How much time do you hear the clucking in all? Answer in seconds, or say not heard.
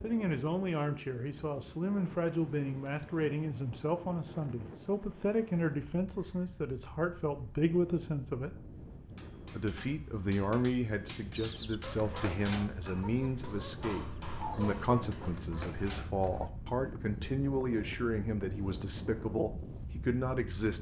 5 s.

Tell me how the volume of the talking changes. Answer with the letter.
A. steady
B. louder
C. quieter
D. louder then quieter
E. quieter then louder
A.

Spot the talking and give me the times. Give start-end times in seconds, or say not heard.
0.0-8.6, 9.5-20.7.